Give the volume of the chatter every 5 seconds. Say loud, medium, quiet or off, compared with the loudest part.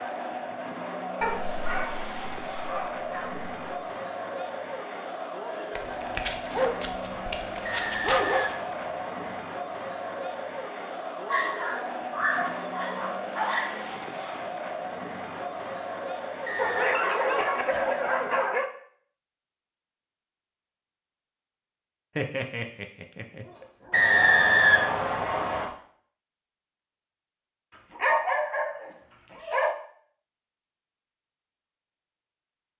loud, loud, loud, loud, off, off, off.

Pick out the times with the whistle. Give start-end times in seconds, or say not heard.
7.6-9.4, 16.4-17.1, 23.9-25.6.